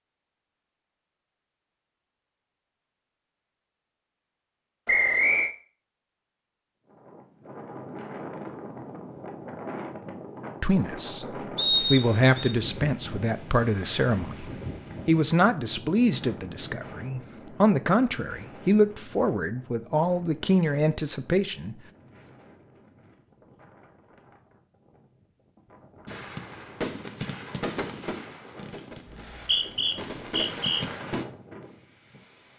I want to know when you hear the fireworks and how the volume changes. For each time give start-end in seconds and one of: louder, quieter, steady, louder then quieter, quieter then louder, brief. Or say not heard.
26.1-31.2 quieter then louder.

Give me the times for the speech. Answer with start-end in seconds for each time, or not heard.
10.6-14.4, 15.1-21.8.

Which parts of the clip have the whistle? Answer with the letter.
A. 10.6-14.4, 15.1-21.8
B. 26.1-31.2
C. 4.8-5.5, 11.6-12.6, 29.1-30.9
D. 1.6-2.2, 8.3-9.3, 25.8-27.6
C.